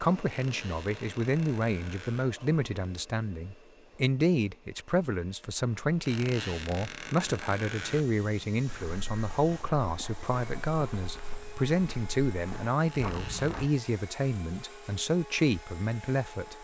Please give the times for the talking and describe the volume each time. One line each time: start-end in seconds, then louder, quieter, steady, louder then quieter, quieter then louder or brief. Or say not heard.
0.0-16.5 steady.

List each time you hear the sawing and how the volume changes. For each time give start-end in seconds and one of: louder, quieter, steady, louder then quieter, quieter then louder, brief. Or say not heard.
not heard.